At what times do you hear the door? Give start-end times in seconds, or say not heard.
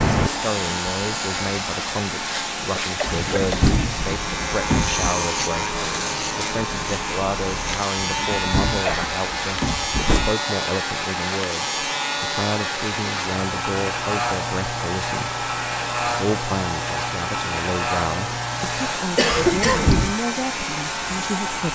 3.0-5.1, 8.0-10.3, 19.3-20.1.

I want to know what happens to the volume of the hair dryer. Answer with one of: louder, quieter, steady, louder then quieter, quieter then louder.
steady.